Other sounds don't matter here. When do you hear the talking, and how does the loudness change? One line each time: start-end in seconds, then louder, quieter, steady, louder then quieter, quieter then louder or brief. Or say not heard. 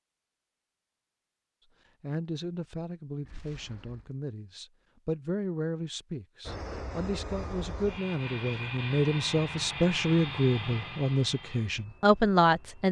2.0-12.8 louder.